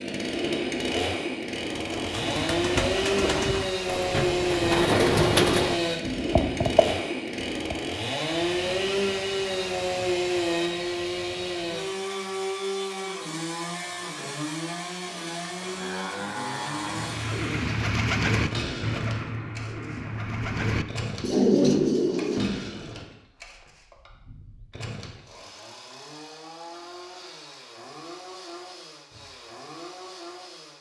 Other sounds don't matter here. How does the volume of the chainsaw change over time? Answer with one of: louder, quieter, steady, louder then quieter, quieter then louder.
quieter.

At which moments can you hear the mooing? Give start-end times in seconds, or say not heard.
15.3-17.2.